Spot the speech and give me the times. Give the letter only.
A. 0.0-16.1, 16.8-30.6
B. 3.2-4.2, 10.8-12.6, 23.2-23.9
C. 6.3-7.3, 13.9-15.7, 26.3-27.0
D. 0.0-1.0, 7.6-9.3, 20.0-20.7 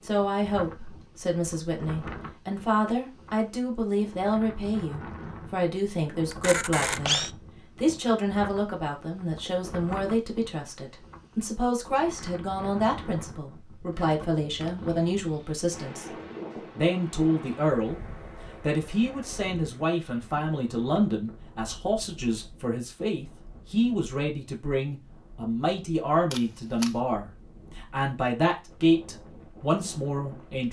A.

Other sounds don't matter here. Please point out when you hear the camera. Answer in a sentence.
The camera can be heard from 6.3 to 7.3 s, from 13.9 to 15.7 s and from 26.3 to 27.0 s.